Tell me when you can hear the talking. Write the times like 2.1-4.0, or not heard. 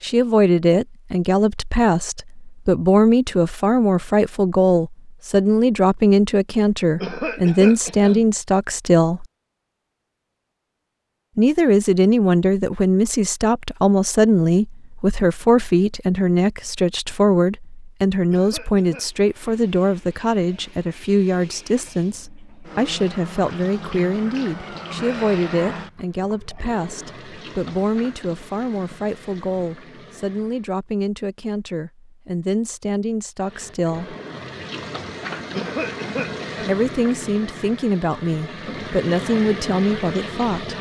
0.0-9.2, 11.3-34.1, 36.6-40.7.